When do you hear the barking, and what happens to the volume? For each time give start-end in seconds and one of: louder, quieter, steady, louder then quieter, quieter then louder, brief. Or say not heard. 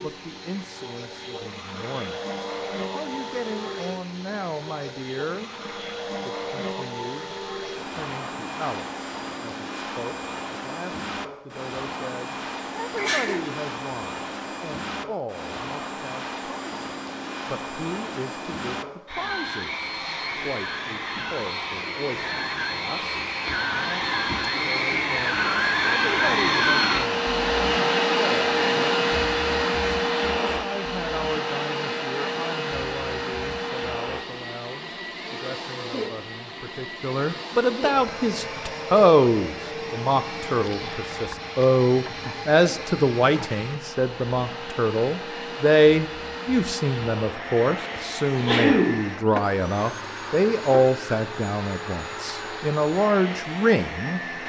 not heard.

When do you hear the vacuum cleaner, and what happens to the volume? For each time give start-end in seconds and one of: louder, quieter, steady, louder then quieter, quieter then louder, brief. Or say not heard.
0.0-54.4 louder then quieter.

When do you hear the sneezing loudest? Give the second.
49 s.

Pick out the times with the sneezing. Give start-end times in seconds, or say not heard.
12.9-13.4, 48.2-49.0.